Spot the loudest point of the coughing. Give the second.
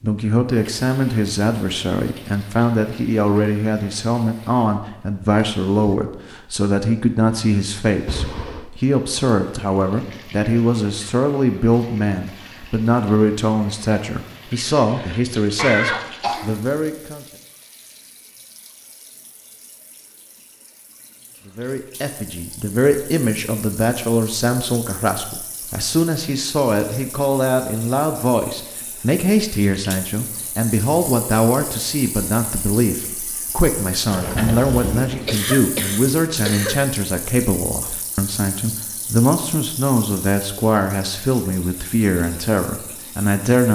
16 s.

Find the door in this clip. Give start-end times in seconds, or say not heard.
34.1-35.5.